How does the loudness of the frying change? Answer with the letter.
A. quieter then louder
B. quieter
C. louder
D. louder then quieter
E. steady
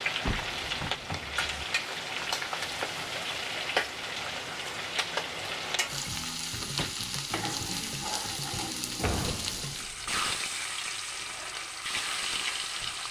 E.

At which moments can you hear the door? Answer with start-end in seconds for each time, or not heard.
0.2-1.6, 6.6-7.0, 9.0-10.1.